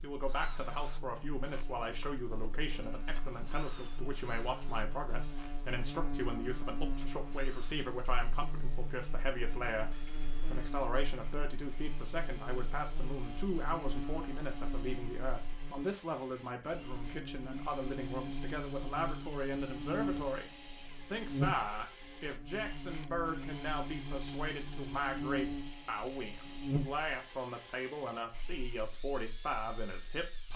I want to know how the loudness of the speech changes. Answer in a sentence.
The volume of the speech stays about the same.